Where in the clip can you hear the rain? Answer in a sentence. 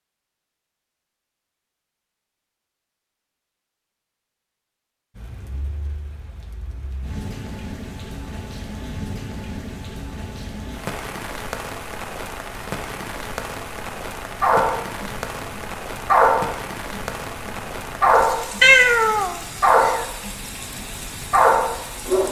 You can hear the rain from 5.2 to 22.2 s.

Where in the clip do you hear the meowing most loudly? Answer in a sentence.
The loudest moment of the meowing is at 19 seconds.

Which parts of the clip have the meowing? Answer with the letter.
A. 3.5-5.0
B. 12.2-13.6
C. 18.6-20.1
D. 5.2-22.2
C.